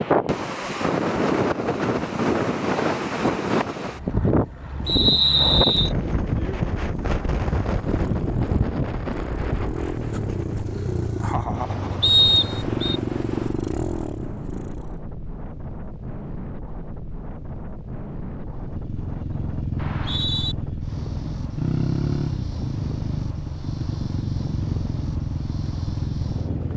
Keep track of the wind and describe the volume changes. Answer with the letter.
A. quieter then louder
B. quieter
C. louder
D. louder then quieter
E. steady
B.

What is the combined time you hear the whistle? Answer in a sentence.
The whistle can be heard for 3 seconds in total.